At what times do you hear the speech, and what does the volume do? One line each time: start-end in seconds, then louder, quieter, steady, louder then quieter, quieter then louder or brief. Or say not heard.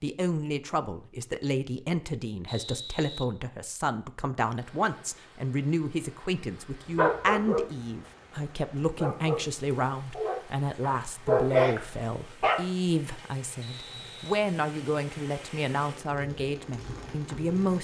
0.0-17.7 steady.